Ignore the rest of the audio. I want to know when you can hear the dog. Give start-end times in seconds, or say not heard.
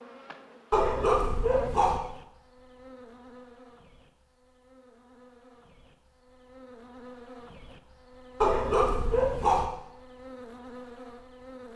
0.7-2.0, 8.4-9.7.